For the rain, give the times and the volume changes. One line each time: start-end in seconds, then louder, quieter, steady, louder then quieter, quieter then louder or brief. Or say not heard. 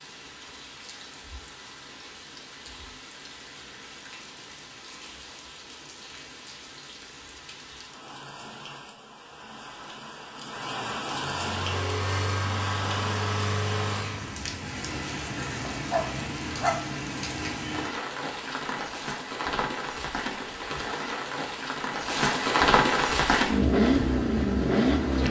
0.0-25.2 louder.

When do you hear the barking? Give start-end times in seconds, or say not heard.
15.7-16.9.